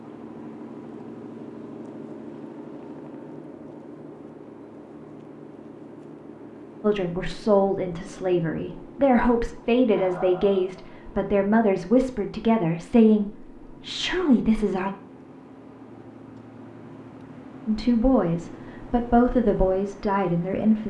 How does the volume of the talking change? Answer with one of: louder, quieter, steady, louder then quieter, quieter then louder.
steady.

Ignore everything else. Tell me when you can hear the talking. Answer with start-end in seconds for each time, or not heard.
6.8-14.9, 17.6-20.8.